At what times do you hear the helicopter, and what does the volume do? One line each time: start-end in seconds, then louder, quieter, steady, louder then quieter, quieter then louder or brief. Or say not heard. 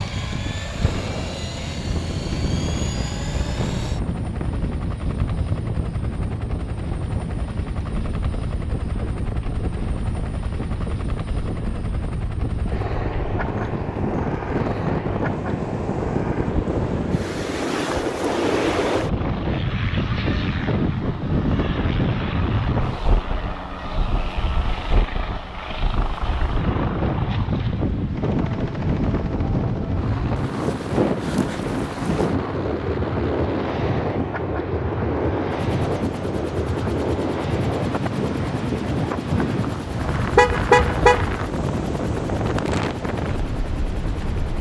0.0-44.5 steady.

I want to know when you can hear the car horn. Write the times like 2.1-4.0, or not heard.
39.9-41.2.